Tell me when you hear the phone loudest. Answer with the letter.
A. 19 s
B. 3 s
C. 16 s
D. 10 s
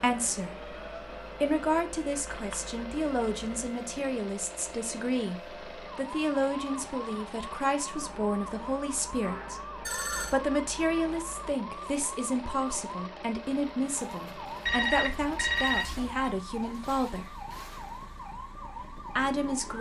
C.